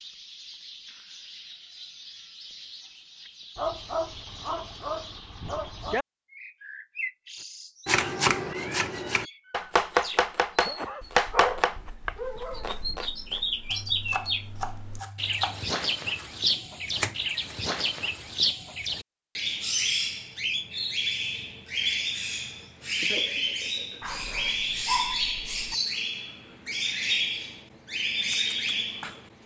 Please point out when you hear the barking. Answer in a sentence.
The barking can be heard from 3.5 to 6.0 s, from 11.3 to 12.8 s and from 24.0 to 25.8 s.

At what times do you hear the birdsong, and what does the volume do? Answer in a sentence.
You can hear the birdsong from 0.0 to 29.4 s, getting louder.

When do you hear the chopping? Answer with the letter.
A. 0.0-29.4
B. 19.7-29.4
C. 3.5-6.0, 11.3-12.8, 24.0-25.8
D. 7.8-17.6
D.